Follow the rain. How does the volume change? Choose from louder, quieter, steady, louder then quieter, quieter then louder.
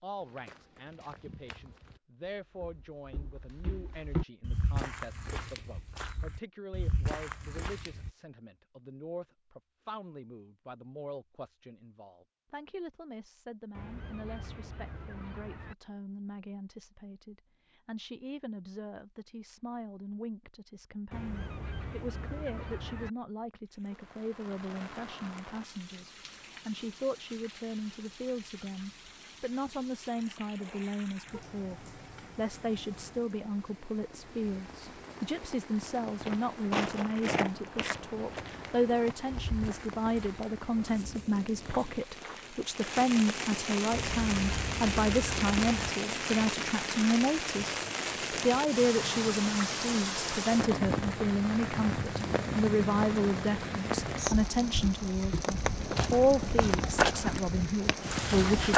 louder.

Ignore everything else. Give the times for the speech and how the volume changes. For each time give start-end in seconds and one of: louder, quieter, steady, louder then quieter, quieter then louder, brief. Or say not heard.
0.0-58.7 louder.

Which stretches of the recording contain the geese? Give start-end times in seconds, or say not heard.
13.7-15.8, 21.1-23.1, 43.9-46.0.